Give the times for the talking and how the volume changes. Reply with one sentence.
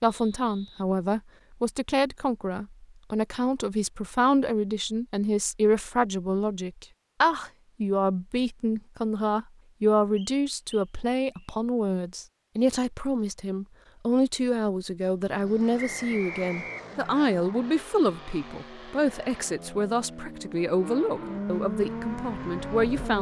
You can hear the talking from 0.0 to 23.1 s, at a steady volume.